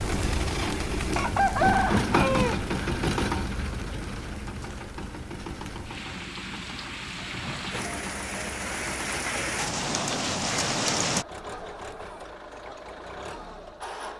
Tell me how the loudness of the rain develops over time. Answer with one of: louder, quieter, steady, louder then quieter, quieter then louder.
quieter then louder.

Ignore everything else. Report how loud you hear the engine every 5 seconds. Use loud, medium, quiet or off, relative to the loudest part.
loud, medium, medium.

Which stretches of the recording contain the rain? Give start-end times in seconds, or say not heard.
0.0-11.2.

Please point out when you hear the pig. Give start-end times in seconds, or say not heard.
not heard.